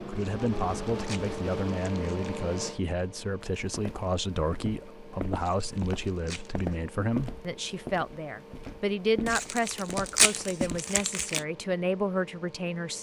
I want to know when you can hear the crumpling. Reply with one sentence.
The crumpling can be heard from 0.1 to 2.4 s, from 5.3 to 6.8 s and from 9.2 to 11.4 s.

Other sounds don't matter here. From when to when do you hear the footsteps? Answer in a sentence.
You can hear the footsteps from 3.6 to 10.8 s.